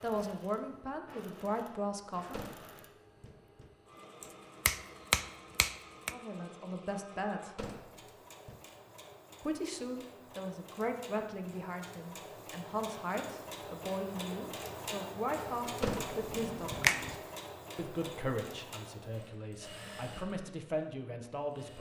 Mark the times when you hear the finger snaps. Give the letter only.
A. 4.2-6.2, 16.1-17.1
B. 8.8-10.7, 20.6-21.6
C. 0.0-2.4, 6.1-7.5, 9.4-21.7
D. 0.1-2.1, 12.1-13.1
A.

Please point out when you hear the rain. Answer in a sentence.
You can't hear the rain here.